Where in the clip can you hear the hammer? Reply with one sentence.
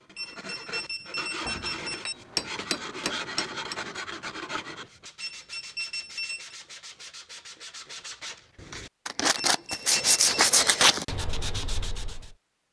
You can hear the hammer from 1.4 to 3.8 s.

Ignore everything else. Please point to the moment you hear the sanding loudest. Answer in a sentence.
The volume of the sanding peaks at 11 seconds.